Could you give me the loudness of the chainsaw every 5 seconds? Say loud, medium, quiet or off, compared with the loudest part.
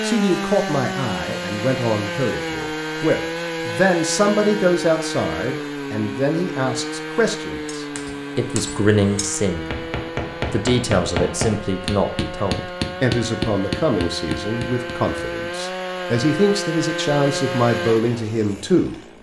loud, loud, medium, loud.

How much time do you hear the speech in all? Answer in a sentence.
The speech can be heard for 18 seconds in total.